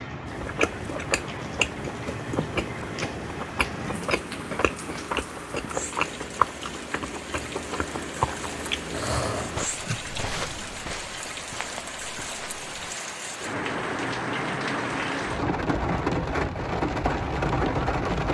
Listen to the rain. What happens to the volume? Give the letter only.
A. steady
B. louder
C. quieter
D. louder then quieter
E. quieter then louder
B.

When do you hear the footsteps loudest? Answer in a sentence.
The loudest moment of the footsteps is at 10 seconds.